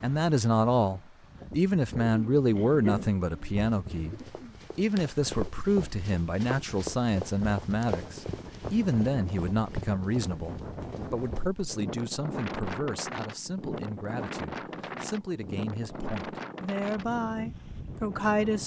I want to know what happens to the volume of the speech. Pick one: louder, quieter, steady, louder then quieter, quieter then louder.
quieter.